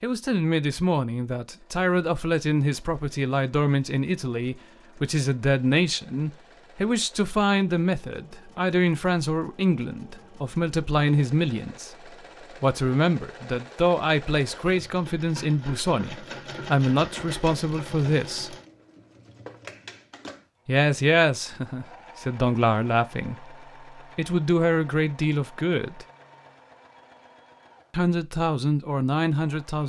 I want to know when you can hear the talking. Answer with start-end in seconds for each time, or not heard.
0.0-18.6, 20.6-26.1, 27.9-29.8.